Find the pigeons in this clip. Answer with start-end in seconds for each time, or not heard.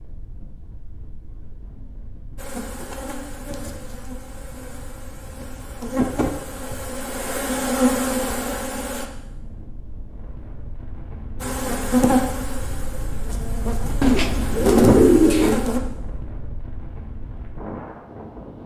14.0-15.6.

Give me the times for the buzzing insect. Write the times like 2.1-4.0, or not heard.
2.4-9.1, 11.4-15.8.